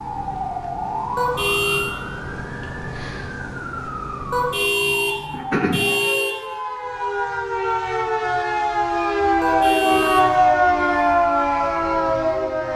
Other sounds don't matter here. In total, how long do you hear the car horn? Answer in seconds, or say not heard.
4 s.